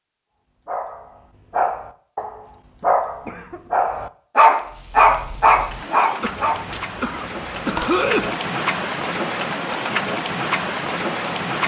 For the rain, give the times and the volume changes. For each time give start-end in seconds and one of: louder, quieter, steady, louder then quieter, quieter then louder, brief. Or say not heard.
4.7-11.6 louder.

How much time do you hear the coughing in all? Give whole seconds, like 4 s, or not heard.
3 s.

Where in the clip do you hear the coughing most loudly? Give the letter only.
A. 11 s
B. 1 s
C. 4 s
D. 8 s
D.